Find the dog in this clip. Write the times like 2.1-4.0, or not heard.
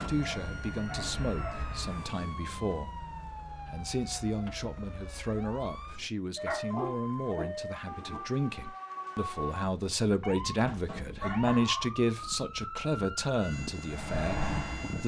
0.2-1.6, 6.5-8.2, 10.7-12.2.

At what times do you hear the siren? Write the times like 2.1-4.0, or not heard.
0.0-15.0.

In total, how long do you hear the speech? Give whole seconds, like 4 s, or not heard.
15 s.